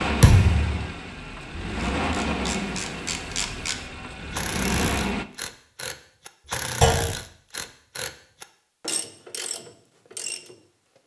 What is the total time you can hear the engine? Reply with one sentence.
You can hear the engine for 5 seconds altogether.